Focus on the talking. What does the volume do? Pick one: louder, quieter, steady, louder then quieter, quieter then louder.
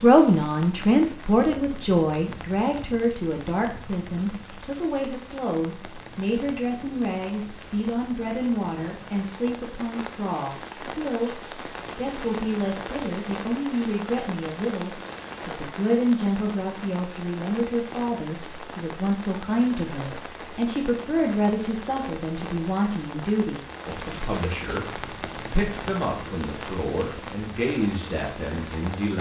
quieter.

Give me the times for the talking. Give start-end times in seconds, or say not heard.
0.0-24.9, 25.5-29.1.